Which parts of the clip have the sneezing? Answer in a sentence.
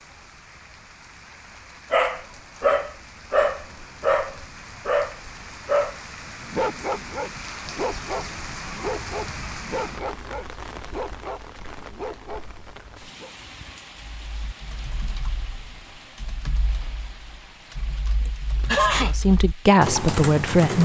You can hear the sneezing from 18.2 to 19.1 s.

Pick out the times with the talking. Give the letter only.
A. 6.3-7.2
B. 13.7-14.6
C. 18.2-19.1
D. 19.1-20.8
D.